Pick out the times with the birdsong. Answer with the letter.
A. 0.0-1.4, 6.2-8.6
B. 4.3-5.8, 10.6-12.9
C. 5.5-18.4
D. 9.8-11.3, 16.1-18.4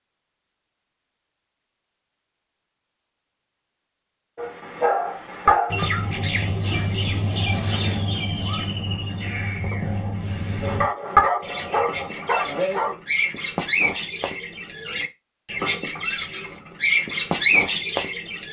C.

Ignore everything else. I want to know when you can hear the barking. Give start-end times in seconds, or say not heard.
4.3-5.8, 10.6-12.9.